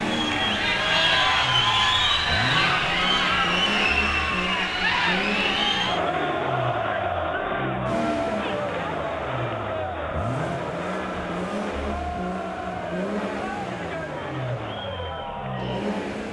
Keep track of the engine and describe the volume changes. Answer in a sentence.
The volume of the engine stays about the same.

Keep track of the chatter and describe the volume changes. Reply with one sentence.
The volume of the chatter goes down.